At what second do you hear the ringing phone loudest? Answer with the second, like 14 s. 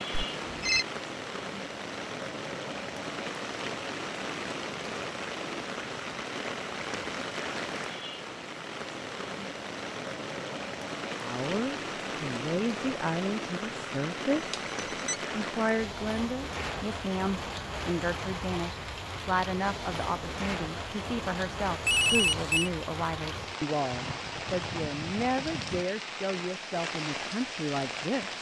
22 s.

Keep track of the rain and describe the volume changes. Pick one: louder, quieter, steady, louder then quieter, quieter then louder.
steady.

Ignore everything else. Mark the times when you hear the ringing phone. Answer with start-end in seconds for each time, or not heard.
0.1-0.8, 14.4-15.2, 21.8-22.7.